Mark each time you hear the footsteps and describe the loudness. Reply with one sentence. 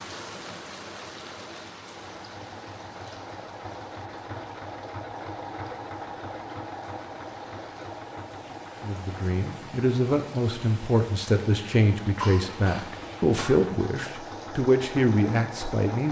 You can't hear the footsteps here.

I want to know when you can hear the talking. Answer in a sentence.
You can hear the talking from 8.8 to 16.0 s.